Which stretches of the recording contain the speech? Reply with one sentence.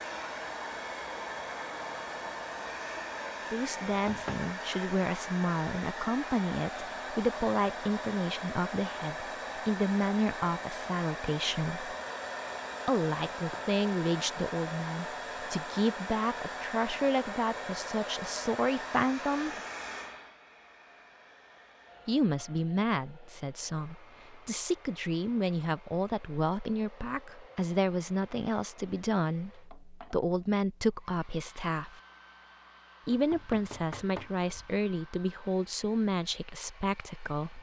You can hear the speech from 3.5 to 11.9 s, from 12.8 to 19.6 s, from 22.1 to 32.0 s and from 33.0 to 37.5 s.